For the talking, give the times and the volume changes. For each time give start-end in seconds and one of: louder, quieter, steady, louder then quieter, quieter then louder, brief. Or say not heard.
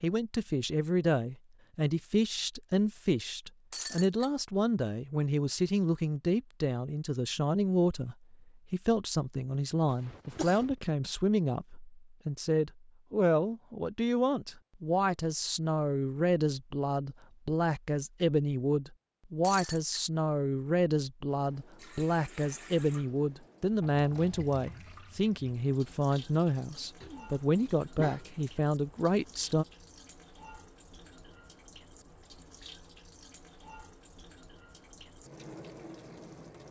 0.0-29.6 steady.